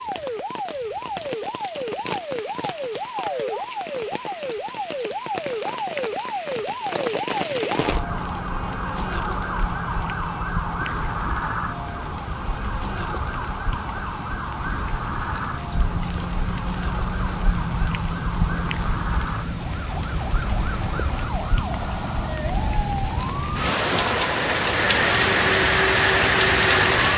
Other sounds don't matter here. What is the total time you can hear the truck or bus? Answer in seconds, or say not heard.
not heard.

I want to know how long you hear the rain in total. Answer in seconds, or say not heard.
27 s.